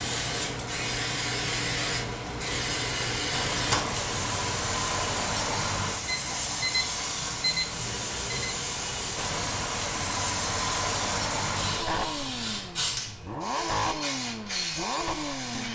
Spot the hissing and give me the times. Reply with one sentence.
The hissing can be heard from 0.0 to 15.7 s.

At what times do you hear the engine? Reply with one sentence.
You can hear the engine from 0.0 to 15.7 s.